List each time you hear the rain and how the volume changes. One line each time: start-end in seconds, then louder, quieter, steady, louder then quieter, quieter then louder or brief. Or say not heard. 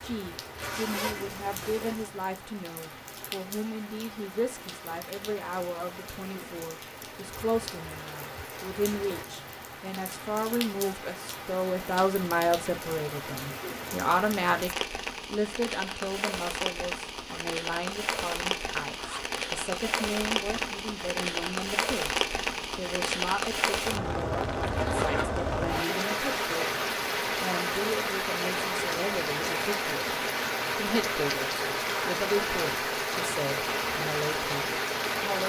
0.0-35.4 louder.